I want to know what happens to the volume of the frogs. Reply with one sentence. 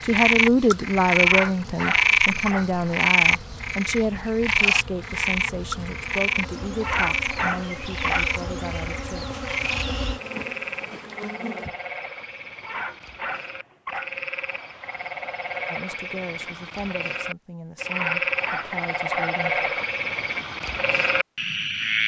The loudness of the frogs goes down, then up.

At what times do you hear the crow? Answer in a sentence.
The crow can't be heard in this clip.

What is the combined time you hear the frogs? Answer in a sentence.
The frogs can be heard for 22 seconds in total.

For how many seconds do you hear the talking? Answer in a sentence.
The talking can be heard for 13 seconds in total.